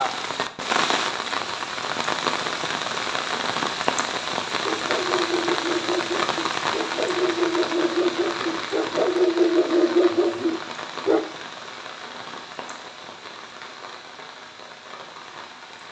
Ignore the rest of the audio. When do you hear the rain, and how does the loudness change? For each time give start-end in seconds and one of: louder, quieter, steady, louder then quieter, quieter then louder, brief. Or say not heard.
0.0-15.8 quieter.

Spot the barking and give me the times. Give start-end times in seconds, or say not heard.
4.6-11.2.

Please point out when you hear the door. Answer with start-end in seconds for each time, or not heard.
not heard.